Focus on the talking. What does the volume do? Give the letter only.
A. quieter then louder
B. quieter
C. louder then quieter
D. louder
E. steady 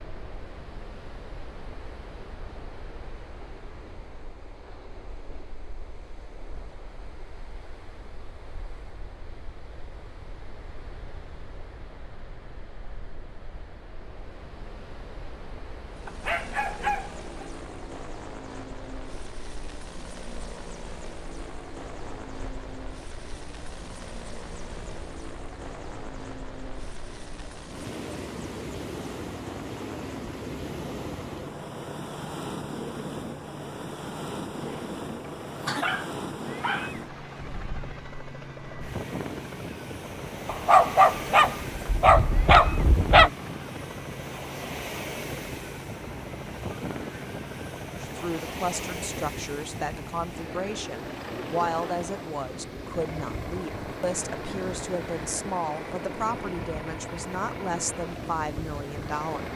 E.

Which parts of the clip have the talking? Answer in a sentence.
You can hear the talking from 48.0 to 59.5 s.